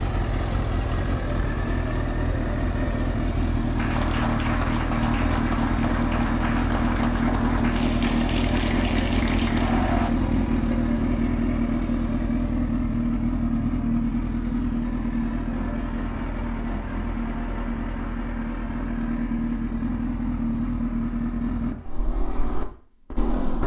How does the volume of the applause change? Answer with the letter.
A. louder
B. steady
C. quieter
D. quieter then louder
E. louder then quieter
B.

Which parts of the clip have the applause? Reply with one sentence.
The applause can be heard from 3.8 to 10.1 s.